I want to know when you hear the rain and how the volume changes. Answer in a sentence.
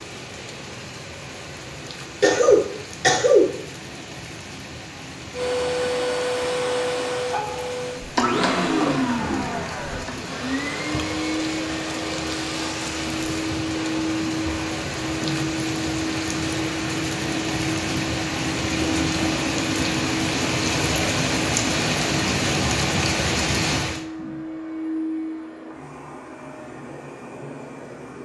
You can hear the rain from 0.0 to 24.1 s, getting louder.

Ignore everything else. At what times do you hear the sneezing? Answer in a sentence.
You can hear the sneezing from 2.2 to 3.5 s.